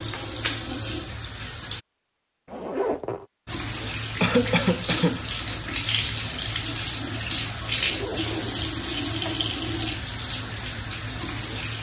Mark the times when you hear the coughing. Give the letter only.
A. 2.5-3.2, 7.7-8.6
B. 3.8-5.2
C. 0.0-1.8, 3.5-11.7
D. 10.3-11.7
B.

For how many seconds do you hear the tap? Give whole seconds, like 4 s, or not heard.
10 s.